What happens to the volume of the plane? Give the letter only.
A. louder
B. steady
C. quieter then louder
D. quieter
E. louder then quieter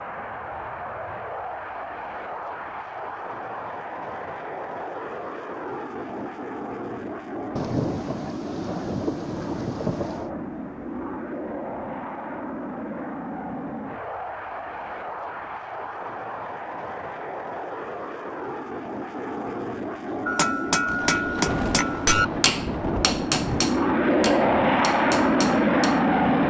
A.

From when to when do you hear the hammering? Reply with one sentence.
You can hear the hammering from 20.2 to 26.1 s.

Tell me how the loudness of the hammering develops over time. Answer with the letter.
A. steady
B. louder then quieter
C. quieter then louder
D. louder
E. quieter
E.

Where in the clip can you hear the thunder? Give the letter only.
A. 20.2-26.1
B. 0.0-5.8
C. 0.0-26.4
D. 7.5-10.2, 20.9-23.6
D.